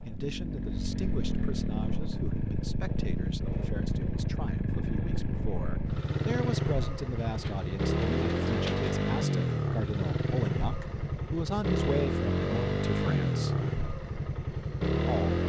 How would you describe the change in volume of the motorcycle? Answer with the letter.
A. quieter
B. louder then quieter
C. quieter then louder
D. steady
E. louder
D.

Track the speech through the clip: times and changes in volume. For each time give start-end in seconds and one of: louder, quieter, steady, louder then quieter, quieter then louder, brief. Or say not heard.
0.0-13.6 louder
14.8-15.3 brief.